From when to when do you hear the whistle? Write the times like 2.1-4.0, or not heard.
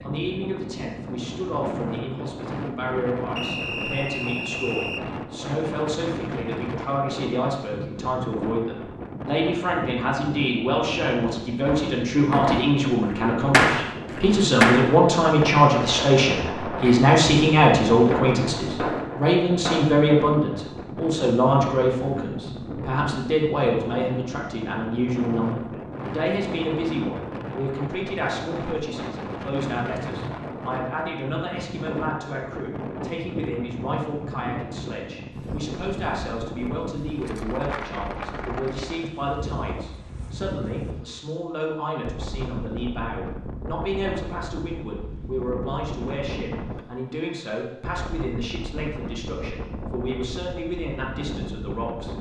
3.4-5.0.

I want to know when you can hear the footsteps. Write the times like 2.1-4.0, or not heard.
not heard.